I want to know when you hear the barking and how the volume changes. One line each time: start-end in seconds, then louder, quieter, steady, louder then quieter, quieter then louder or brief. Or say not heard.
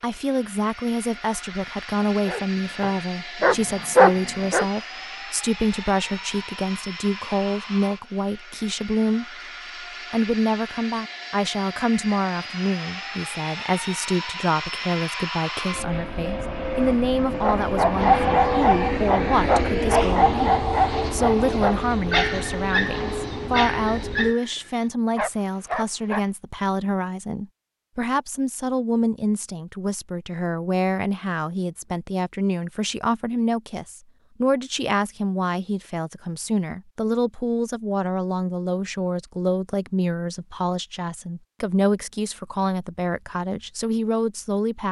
2.2-4.7 brief
17.4-26.2 quieter.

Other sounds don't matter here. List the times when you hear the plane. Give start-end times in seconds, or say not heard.
0.0-24.4.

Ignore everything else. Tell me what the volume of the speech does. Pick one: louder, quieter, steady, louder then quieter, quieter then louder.
steady.